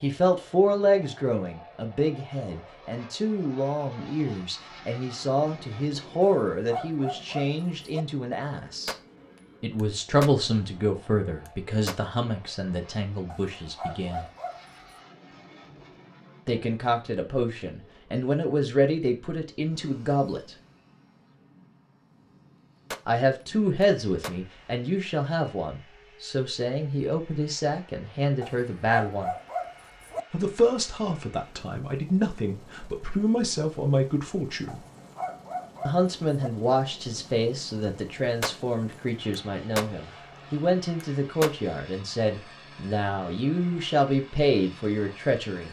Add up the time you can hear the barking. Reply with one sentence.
You can hear the barking for 7 seconds altogether.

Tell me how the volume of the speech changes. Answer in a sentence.
The volume of the speech stays about the same.